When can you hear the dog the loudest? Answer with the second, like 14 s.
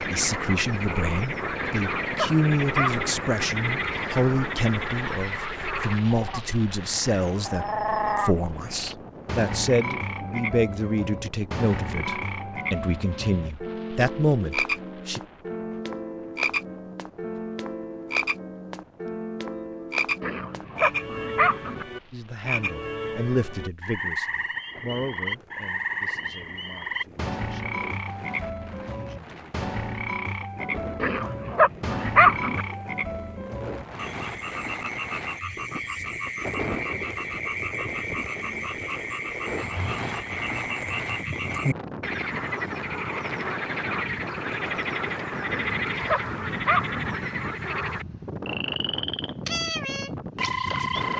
32 s.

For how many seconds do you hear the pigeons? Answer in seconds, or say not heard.
not heard.